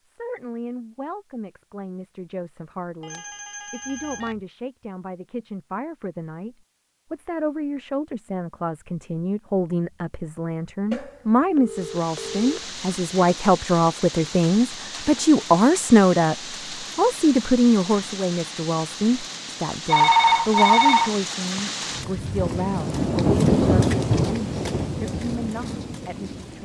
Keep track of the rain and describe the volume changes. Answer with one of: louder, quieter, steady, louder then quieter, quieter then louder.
louder.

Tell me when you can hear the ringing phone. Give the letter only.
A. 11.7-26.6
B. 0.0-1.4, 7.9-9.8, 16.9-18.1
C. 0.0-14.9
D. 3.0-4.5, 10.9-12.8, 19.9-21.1
D.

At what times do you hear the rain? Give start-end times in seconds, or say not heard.
11.7-26.6.